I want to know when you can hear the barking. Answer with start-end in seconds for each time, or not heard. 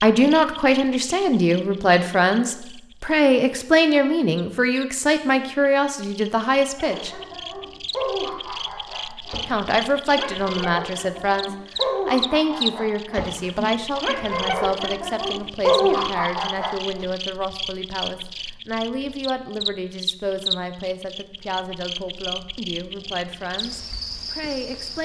6.8-17.1.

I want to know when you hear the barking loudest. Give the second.
16 s.